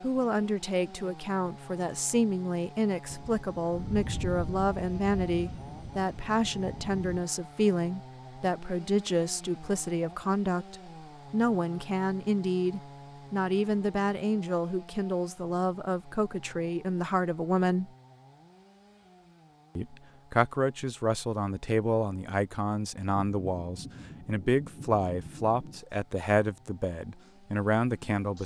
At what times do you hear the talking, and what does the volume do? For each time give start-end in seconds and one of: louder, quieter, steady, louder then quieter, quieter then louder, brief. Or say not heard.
0.0-17.9 steady
19.8-28.4 steady.